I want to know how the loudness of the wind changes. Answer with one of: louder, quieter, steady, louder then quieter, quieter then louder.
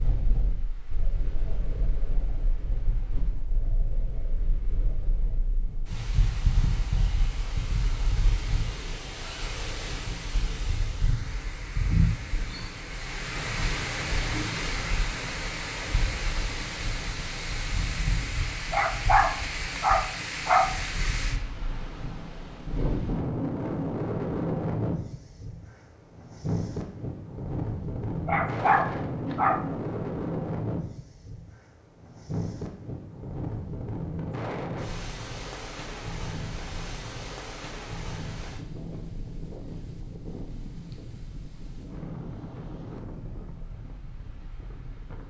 louder then quieter.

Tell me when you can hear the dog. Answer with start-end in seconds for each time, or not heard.
18.7-20.7, 28.2-29.6.